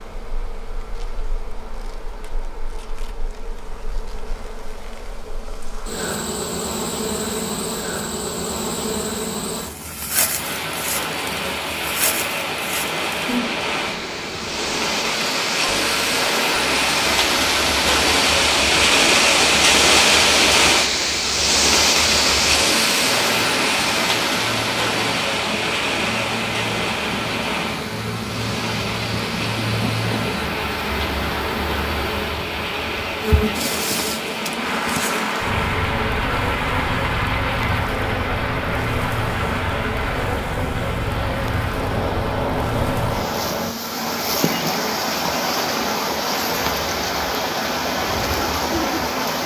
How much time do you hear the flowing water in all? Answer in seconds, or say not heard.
39 s.